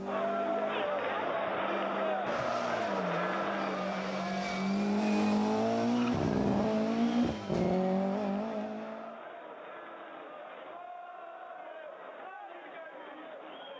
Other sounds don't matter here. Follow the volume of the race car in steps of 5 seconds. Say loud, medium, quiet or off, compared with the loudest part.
medium, loud, off.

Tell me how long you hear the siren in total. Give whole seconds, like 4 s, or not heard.
not heard.